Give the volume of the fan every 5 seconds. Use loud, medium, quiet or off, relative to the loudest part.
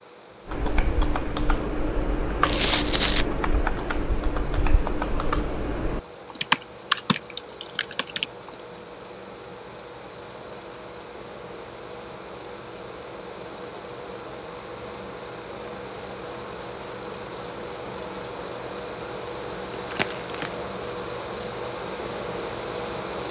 quiet, medium, medium, loud, loud.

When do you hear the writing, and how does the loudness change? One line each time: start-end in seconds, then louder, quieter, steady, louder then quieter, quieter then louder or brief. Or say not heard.
not heard.